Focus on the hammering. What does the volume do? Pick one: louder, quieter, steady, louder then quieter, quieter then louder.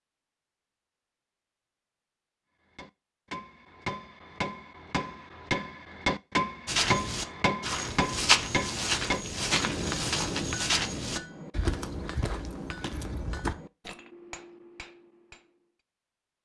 louder then quieter.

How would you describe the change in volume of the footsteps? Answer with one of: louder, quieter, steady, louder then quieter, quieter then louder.
quieter.